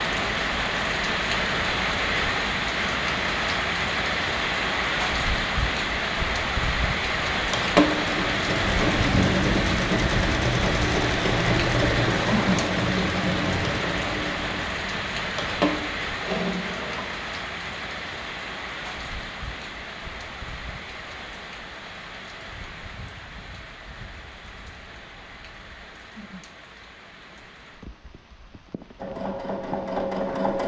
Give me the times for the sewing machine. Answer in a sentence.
The sewing machine can be heard from 7.3 to 17.1 s and from 28.9 to 30.6 s.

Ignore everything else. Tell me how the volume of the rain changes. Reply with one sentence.
The loudness of the rain goes down.